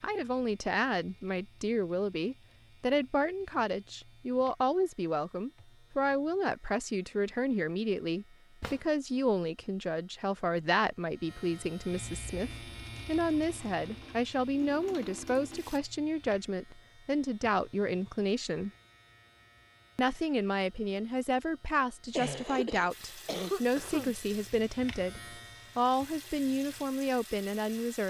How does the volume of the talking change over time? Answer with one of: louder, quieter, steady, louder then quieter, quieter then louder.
steady.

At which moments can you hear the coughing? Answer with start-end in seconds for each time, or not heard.
22.1-24.1.